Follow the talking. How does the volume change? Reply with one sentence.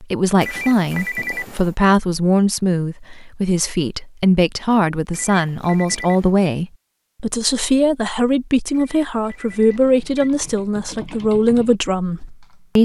The volume of the talking stays about the same.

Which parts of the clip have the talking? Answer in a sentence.
You can hear the talking from 0.0 to 12.8 s.